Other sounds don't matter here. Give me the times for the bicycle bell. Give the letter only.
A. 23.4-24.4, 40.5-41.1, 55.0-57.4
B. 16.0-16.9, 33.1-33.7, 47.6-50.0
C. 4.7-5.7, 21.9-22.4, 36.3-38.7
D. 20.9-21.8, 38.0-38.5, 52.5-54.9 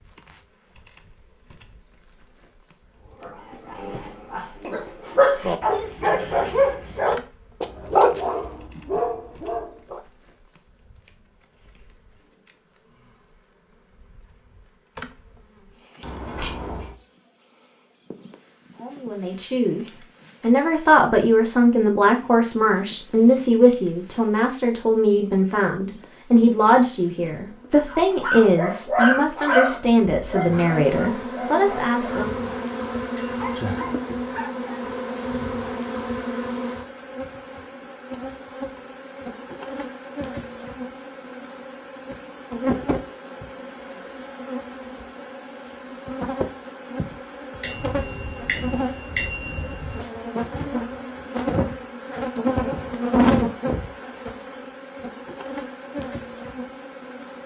B.